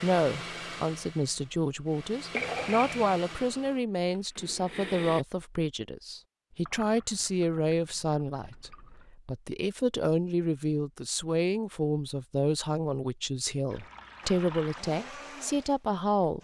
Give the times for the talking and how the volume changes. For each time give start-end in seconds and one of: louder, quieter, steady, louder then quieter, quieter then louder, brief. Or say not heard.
0.0-16.3 steady.